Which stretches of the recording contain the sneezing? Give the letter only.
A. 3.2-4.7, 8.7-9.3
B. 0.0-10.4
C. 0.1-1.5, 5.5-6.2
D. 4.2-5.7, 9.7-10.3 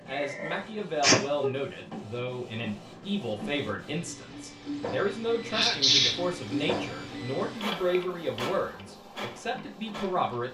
C.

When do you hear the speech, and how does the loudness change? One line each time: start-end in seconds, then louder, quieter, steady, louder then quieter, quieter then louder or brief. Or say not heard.
0.0-10.4 steady.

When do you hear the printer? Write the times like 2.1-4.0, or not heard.
0.0-10.4.